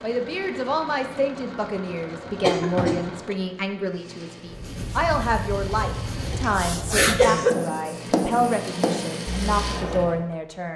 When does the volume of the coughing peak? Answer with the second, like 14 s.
7 s.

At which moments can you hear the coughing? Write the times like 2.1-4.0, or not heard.
2.4-3.4, 6.3-7.5.